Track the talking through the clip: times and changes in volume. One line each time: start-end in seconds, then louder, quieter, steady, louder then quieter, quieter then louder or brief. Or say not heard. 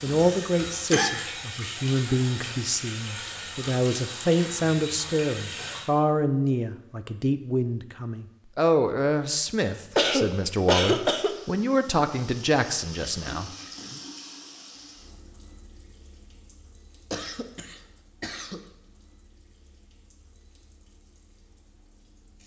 0.0-14.0 steady.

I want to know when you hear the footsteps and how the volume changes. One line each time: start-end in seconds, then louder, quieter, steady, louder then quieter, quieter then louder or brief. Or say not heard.
not heard.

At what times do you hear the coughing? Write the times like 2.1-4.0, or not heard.
0.2-1.1, 9.6-11.3, 17.1-18.6.